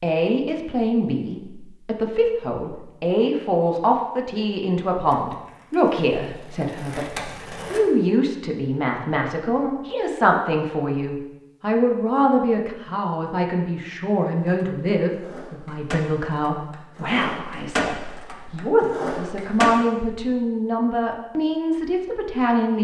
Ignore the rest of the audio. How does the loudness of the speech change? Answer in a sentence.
The loudness of the speech stays about the same.